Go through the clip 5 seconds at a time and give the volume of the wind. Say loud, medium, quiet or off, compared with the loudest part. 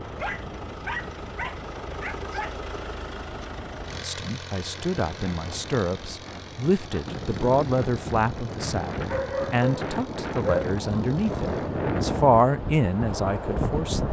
quiet, medium, loud.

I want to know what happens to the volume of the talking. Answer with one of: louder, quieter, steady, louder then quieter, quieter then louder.
louder.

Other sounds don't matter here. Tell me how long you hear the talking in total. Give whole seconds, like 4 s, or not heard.
10 s.